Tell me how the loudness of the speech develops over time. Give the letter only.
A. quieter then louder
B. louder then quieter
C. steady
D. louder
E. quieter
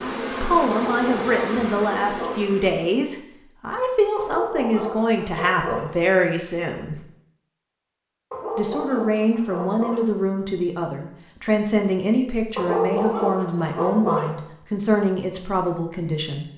C.